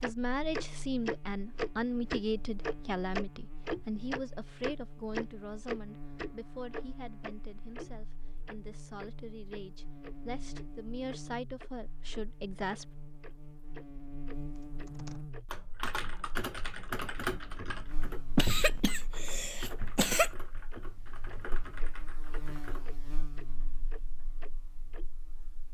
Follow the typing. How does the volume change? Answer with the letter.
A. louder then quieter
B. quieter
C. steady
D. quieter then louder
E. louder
B.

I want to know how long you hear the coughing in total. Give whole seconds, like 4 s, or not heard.
2 s.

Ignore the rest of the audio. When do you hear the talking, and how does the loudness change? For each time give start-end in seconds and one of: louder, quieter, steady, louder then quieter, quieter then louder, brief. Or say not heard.
0.0-12.9 quieter then louder.